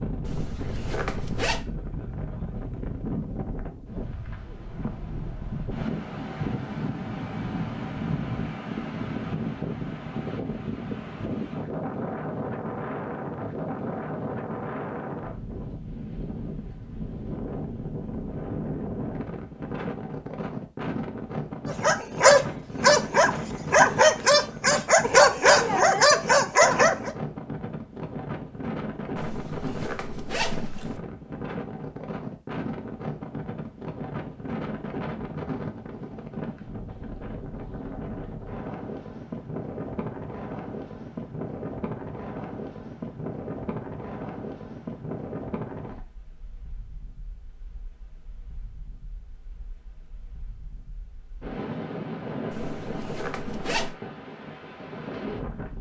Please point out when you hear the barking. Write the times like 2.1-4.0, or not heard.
21.6-27.1.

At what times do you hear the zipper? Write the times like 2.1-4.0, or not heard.
0.2-1.6, 29.1-31.0, 52.5-54.0.